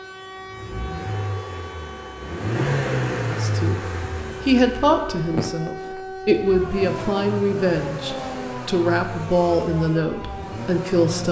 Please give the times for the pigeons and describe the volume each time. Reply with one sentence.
You can't hear the pigeons here.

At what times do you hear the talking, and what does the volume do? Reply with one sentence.
You can hear the talking briefly from 3.2 to 3.9 s; and from 4.5 to 11.2 s, at a steady volume.